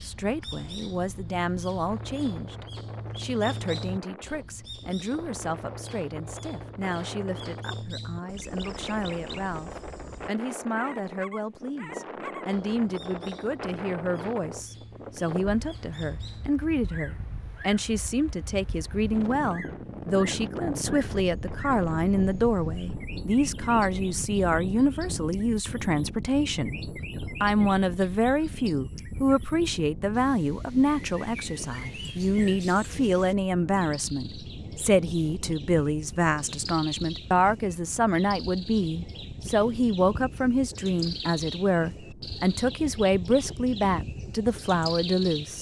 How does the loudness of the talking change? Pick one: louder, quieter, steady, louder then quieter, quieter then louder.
louder.